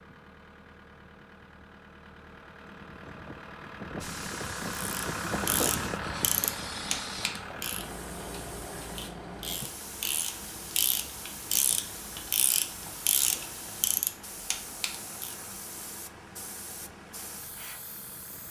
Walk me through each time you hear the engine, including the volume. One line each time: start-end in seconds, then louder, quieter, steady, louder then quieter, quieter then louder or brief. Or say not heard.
0.0-18.4 louder then quieter.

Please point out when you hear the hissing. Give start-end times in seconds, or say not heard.
4.0-18.4.